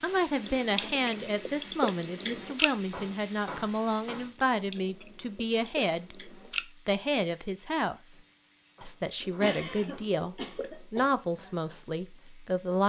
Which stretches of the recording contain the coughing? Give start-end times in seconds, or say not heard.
9.4-11.1.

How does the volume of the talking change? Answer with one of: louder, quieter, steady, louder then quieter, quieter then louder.
steady.